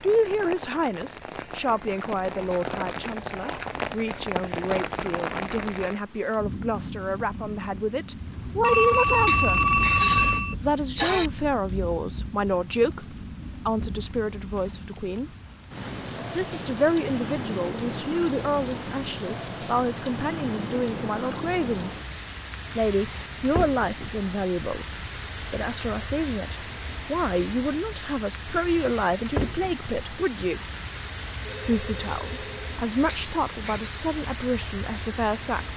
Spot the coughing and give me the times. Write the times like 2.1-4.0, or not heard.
9.2-11.3, 33.0-33.9.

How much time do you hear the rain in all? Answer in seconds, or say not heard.
36 s.